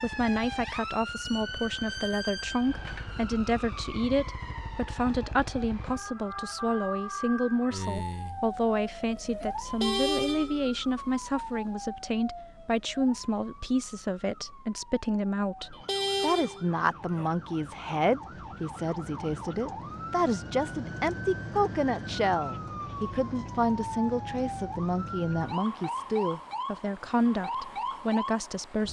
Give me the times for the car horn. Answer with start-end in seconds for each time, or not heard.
9.7-10.7, 15.7-17.3.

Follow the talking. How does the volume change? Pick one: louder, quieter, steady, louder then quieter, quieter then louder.
steady.